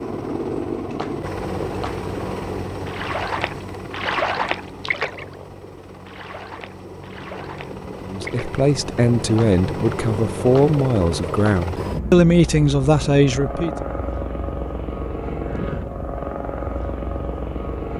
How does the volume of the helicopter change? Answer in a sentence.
The volume of the helicopter goes down, then up.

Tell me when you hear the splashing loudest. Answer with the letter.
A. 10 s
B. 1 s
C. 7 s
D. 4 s
D.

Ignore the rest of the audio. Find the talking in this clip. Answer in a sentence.
You can hear the talking from 8.1 to 13.8 s.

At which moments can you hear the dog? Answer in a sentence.
You can't hear the dog here.